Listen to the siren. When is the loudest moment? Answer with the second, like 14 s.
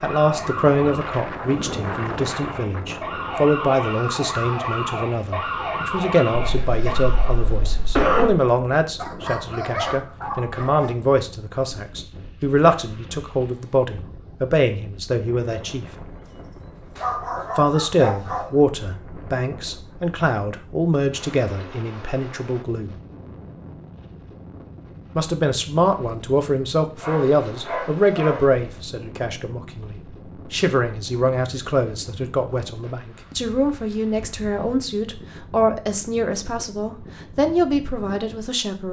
6 s.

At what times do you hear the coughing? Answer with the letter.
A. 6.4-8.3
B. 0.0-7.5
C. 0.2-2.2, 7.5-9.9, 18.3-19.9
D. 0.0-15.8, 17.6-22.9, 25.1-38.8
A.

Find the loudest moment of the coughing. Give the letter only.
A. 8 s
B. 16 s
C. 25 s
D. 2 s
A.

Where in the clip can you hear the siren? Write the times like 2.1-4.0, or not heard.
0.0-7.5.